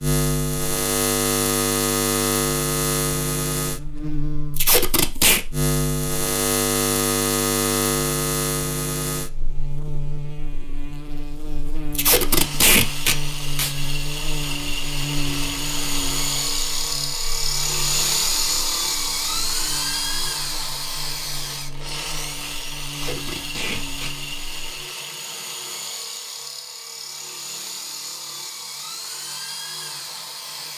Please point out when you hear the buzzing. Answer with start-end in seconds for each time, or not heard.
0.0-24.9.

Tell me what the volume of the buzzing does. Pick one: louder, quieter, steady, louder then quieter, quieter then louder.
quieter.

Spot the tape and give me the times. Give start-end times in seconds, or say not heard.
4.5-5.5, 11.9-13.7, 22.9-24.1.